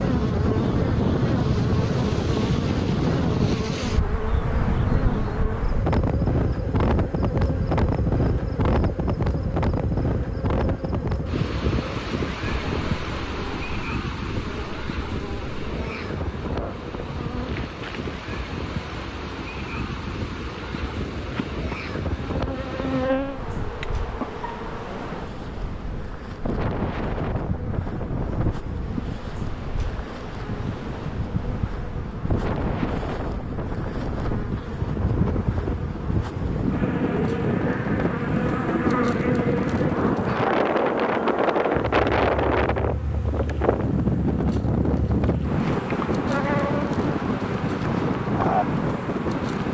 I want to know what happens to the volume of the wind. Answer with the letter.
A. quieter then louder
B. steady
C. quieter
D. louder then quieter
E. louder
A.